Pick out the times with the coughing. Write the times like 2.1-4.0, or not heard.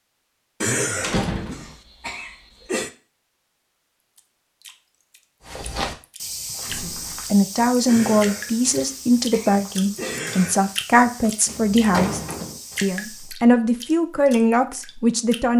0.6-2.9, 7.8-10.6.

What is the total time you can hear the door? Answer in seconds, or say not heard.
3 s.